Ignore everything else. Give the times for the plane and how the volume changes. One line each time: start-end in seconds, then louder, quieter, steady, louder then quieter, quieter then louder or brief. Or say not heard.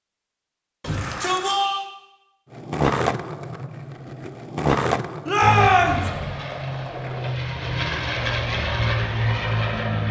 5.4-10.0 louder.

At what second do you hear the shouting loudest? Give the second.
6 s.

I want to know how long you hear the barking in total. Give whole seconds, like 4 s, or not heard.
not heard.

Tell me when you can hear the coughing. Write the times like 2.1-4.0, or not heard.
not heard.